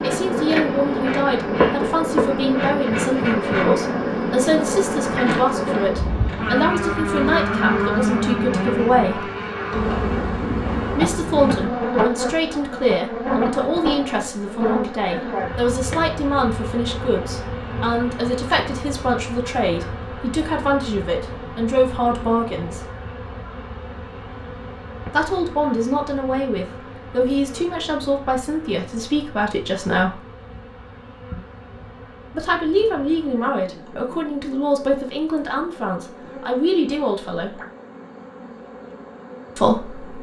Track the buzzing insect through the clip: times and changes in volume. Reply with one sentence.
You can hear the buzzing insect from 0.0 to 40.1 s, getting quieter.